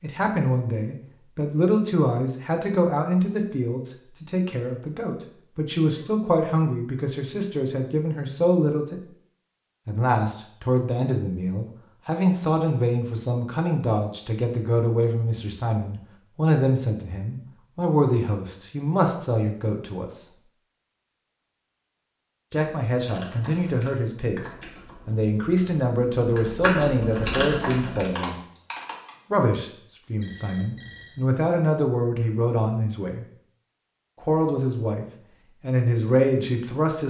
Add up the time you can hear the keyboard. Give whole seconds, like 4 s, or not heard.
7 s.